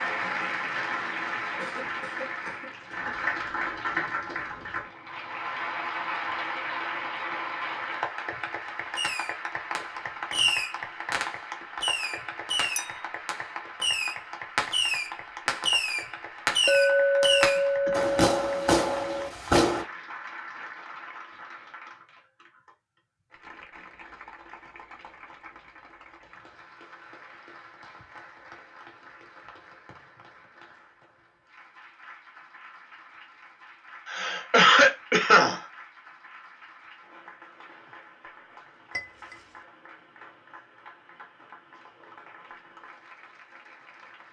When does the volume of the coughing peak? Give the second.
35 s.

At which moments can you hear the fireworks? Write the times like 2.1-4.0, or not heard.
8.9-19.9.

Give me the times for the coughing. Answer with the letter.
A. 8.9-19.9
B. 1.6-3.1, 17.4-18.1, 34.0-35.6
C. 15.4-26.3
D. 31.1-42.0
B.